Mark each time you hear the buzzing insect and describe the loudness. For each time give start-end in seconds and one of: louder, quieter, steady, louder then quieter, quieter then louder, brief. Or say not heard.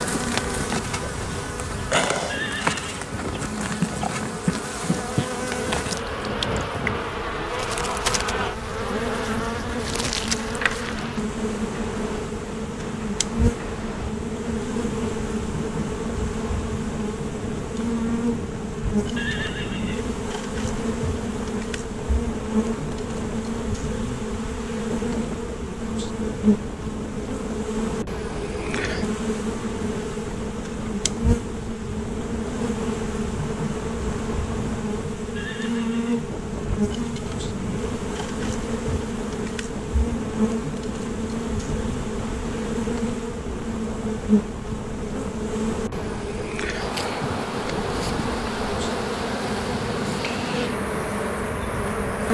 0.0-52.2 steady.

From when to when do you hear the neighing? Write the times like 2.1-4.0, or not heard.
2.2-3.0, 19.1-20.1, 35.4-36.2.